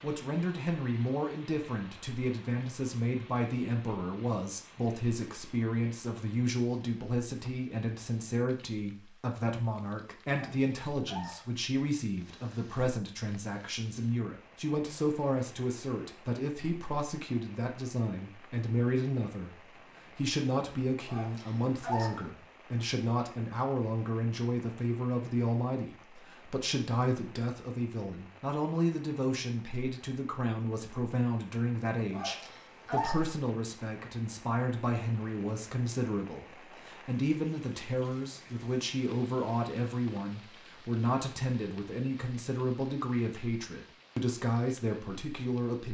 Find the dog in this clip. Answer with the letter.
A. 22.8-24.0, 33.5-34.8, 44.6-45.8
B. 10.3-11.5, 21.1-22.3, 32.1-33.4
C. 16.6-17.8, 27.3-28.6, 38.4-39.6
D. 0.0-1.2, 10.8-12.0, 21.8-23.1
B.